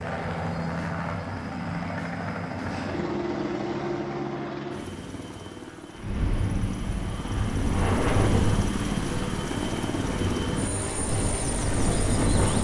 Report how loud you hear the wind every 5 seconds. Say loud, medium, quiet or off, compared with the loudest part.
off, loud, loud.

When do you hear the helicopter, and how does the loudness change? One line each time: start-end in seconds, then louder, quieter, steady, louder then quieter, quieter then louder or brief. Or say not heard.
0.0-12.5 quieter then louder.